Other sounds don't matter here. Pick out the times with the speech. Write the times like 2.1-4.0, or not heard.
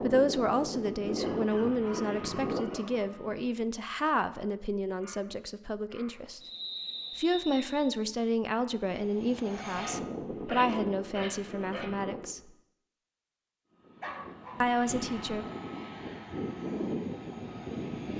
0.0-6.4, 7.2-12.5, 14.6-15.4.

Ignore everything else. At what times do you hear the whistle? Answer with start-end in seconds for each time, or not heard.
6.4-7.9.